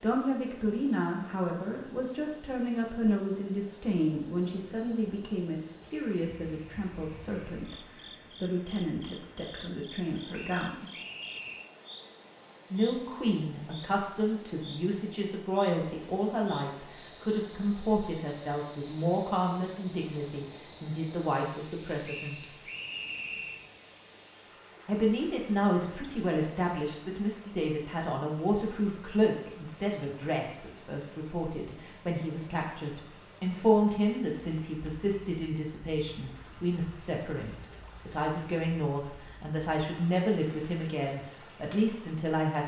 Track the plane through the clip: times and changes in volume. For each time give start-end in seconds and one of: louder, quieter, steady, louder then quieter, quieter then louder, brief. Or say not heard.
not heard.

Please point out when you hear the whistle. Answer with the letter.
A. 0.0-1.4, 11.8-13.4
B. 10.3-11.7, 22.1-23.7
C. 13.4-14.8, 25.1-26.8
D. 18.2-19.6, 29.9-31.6
B.